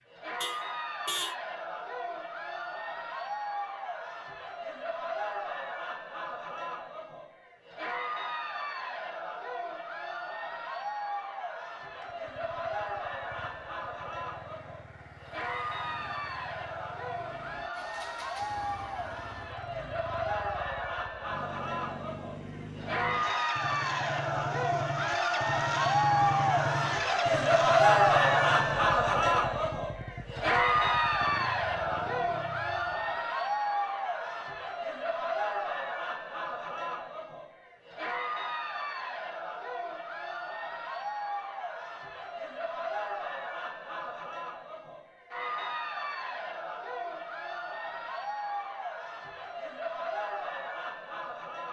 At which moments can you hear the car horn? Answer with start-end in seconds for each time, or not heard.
0.4-1.4.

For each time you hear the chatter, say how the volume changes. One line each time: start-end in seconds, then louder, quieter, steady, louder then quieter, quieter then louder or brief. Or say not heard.
0.1-51.6 louder then quieter.